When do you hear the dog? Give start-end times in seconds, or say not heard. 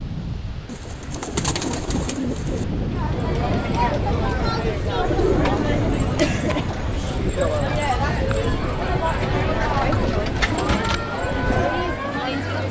not heard.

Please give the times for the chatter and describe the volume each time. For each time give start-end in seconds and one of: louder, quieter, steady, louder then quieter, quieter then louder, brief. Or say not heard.
2.9-12.6 steady.